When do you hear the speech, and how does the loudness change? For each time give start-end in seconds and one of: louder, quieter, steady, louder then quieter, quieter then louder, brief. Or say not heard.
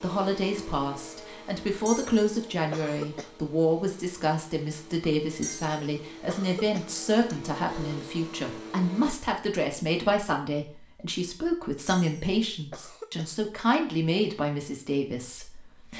0.0-15.9 steady.